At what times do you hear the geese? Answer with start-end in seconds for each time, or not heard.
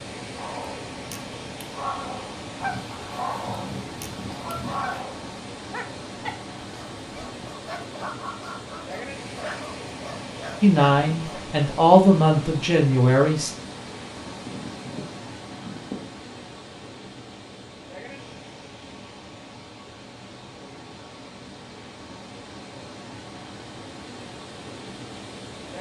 2.6-5.0, 14.4-16.1.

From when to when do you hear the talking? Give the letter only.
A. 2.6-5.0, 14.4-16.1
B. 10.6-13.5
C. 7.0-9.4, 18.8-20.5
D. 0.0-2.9
B.